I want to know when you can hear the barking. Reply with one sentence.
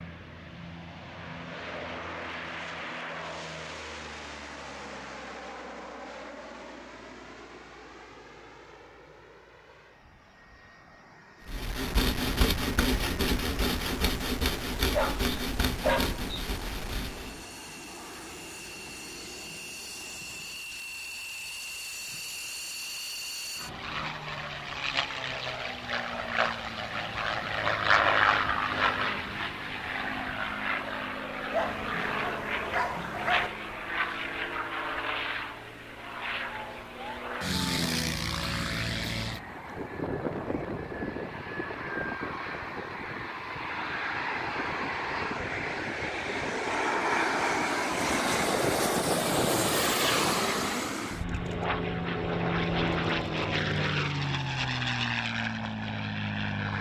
You can hear the barking from 14.8 to 16.2 s and from 31.5 to 33.5 s.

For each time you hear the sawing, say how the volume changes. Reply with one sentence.
You can hear the sawing from 11.4 to 17.4 s, getting quieter.